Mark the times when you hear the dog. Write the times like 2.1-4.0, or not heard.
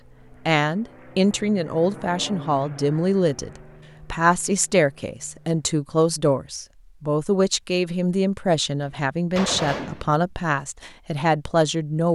not heard.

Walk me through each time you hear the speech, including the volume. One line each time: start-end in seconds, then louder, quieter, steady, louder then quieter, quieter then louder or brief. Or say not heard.
0.5-12.1 steady.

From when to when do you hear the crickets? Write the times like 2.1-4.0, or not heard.
not heard.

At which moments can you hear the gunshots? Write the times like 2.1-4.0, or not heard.
8.8-10.2.